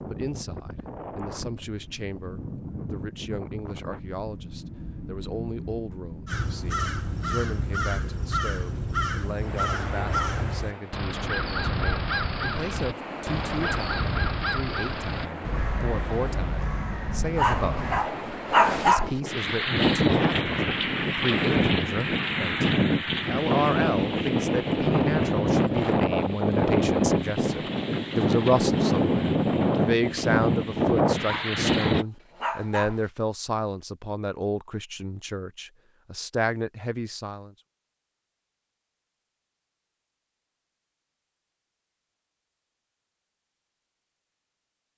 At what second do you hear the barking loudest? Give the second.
19 s.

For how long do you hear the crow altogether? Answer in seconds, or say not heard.
12 s.